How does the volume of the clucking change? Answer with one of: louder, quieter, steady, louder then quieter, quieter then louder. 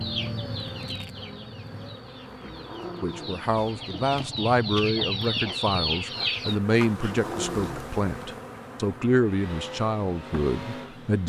quieter then louder.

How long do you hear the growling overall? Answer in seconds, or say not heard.
2 s.